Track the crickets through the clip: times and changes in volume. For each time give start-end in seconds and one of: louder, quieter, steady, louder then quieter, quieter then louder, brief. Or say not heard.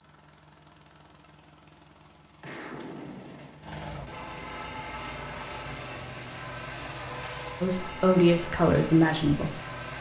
0.0-9.9 louder.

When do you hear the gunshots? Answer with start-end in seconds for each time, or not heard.
2.4-3.6.